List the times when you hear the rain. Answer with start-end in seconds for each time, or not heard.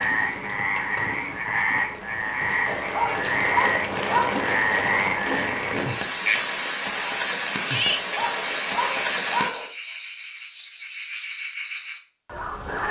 0.0-9.5.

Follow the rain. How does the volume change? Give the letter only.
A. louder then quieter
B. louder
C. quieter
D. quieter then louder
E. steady
B.